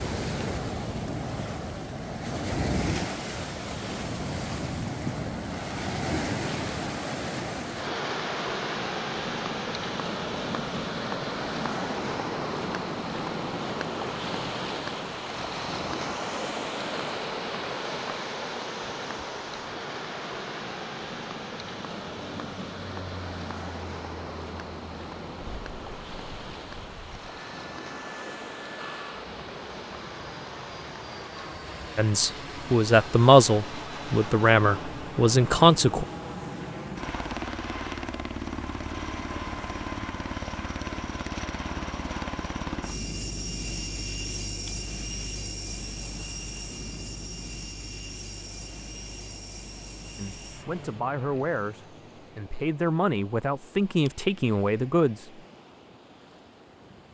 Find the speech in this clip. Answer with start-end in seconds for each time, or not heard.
31.9-36.0, 50.1-55.4.